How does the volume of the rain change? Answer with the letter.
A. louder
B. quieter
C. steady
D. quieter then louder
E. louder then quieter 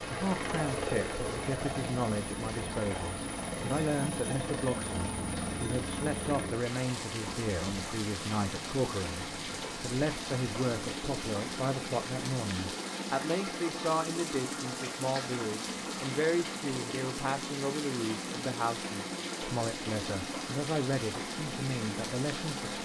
A.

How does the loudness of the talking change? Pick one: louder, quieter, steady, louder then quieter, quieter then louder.
steady.